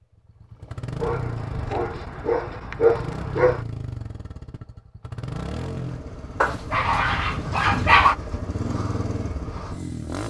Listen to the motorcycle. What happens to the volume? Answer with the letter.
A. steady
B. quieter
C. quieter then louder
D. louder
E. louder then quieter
A.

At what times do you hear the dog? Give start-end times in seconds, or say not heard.
1.0-3.6, 6.4-8.2.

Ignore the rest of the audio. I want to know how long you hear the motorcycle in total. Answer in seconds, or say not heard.
10 s.